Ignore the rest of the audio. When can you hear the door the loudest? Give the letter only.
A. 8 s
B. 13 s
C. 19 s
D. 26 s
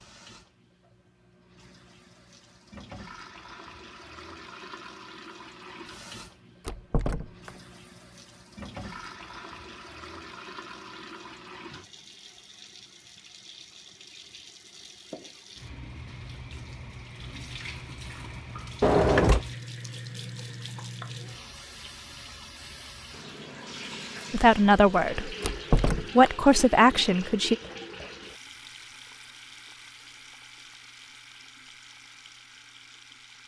C.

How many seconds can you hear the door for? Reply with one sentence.
The door can be heard for 2 seconds in total.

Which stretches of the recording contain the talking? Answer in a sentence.
The talking can be heard from 24.3 to 25.4 s and from 26.1 to 27.6 s.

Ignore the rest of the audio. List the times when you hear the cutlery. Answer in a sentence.
The cutlery can't be heard in this clip.